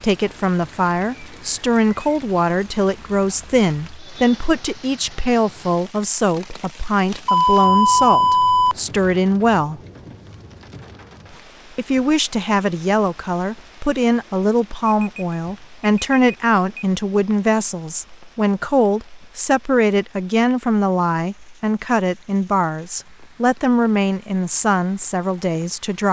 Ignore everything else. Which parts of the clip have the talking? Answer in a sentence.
You can hear the talking from 0.0 to 9.8 s and from 11.8 to 26.0 s.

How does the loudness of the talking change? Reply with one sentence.
The loudness of the talking stays about the same.